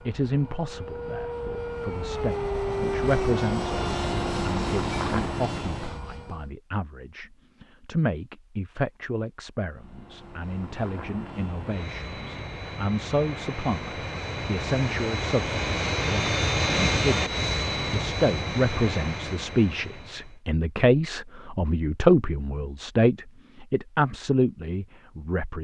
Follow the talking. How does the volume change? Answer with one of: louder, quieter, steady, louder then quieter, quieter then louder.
louder.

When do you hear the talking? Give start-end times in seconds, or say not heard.
0.0-25.5.